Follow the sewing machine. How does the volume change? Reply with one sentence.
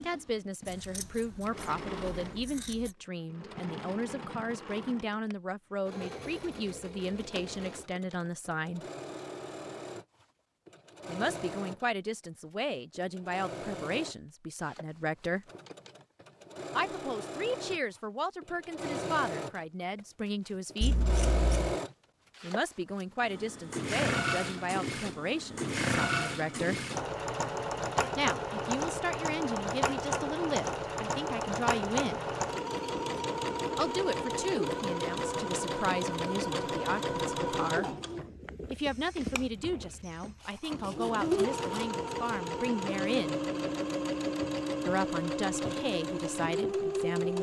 The volume of the sewing machine goes up.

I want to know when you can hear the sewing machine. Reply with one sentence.
The sewing machine can be heard from 0.0 to 47.3 s.